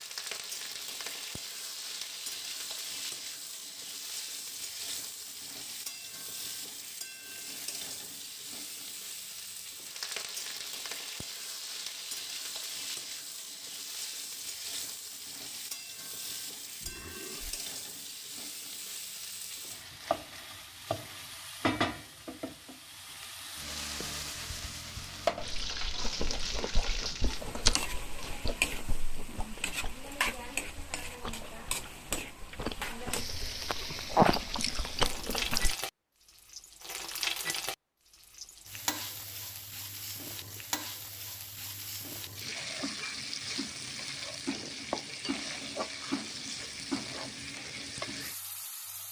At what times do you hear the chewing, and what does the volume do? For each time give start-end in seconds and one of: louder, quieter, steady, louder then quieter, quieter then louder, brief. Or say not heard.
25.4-35.8 quieter then louder.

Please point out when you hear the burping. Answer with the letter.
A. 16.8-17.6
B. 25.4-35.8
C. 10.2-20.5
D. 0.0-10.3
A.